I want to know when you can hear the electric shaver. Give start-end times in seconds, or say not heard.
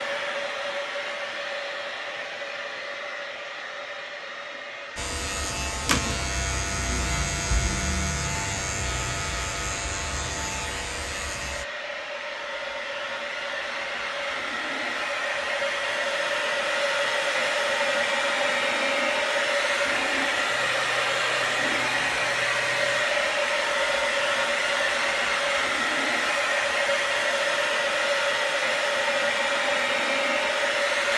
5.0-11.7, 20.4-23.1.